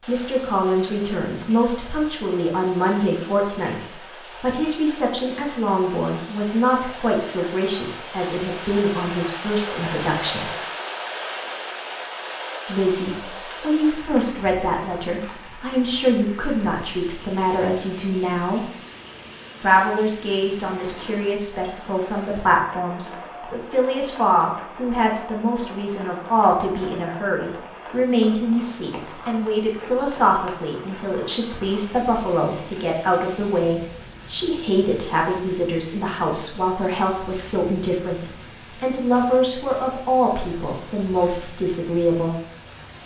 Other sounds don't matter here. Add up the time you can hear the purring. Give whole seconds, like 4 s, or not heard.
not heard.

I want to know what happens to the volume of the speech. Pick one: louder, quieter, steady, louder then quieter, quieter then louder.
steady.